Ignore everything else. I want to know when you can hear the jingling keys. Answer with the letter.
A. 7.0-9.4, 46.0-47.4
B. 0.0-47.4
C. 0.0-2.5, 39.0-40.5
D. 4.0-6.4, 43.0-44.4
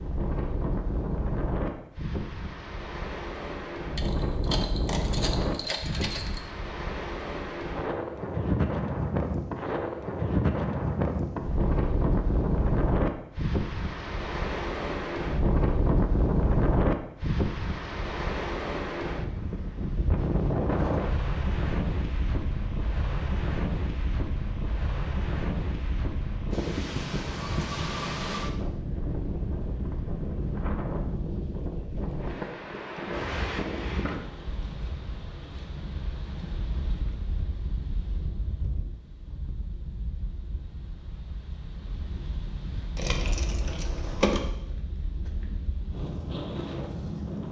D.